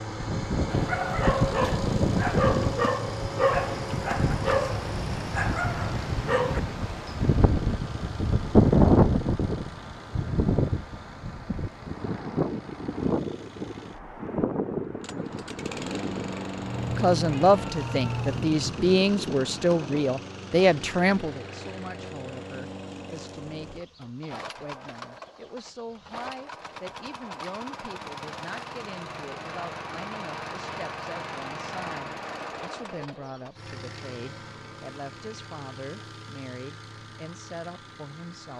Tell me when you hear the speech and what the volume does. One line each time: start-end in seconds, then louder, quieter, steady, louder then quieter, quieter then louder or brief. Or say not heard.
16.9-38.5 quieter.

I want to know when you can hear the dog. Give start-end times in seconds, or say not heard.
0.7-6.6.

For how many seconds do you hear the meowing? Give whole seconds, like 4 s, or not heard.
2 s.